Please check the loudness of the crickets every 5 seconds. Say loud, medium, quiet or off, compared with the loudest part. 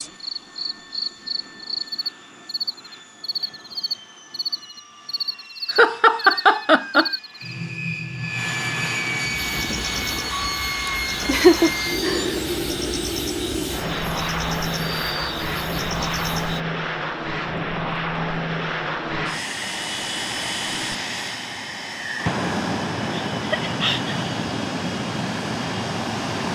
loud, loud, loud, loud, off, off.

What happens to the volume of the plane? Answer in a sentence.
The loudness of the plane goes up.